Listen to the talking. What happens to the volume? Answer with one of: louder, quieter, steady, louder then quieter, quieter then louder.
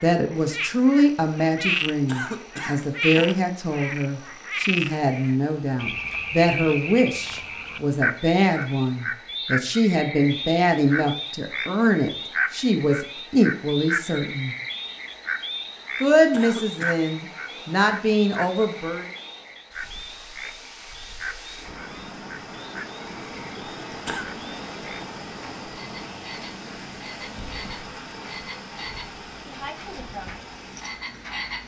steady.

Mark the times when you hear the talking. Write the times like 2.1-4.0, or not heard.
0.0-14.6, 16.0-19.1.